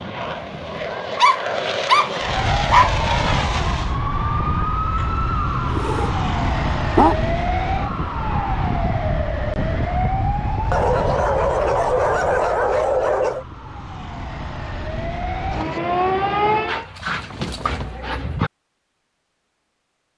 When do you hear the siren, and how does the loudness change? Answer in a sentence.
You can hear the siren from 2.2 to 16.9 s, getting quieter then louder.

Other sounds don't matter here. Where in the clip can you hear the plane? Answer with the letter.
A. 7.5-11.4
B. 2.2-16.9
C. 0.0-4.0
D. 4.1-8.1
C.